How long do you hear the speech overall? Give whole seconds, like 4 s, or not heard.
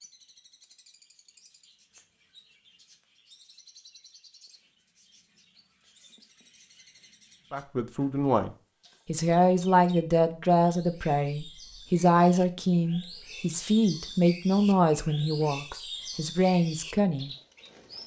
10 s.